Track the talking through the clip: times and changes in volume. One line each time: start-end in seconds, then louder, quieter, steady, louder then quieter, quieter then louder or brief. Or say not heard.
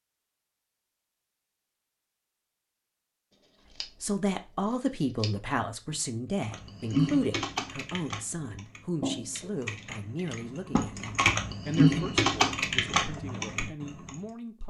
4.0-14.6 quieter.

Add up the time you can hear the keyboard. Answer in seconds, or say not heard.
8 s.